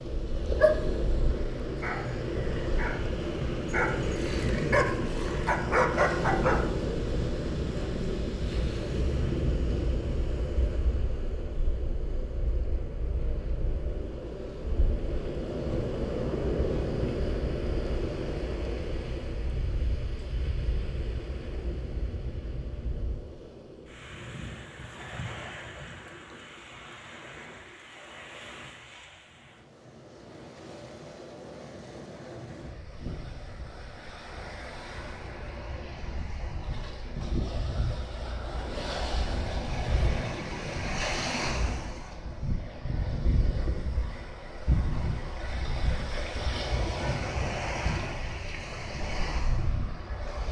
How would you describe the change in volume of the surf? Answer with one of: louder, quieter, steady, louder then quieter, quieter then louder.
quieter then louder.